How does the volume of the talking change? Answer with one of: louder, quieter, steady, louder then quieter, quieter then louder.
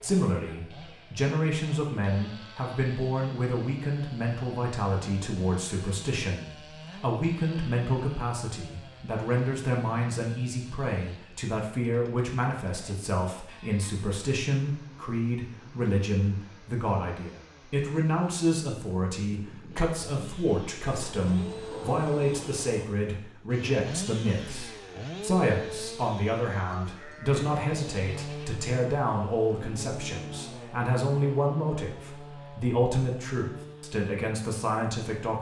steady.